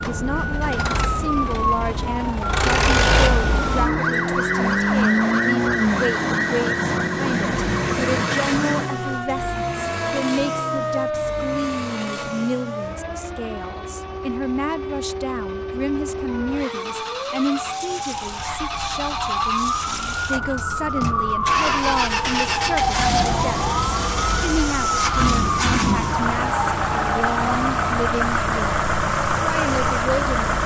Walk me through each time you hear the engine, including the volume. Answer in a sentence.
The engine can be heard from 0.0 to 30.6 s, getting quieter then louder.